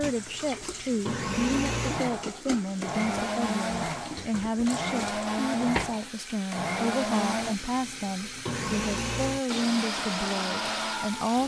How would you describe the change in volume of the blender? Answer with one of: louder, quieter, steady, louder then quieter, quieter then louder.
steady.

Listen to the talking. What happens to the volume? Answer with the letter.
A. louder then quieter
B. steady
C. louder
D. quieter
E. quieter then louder
B.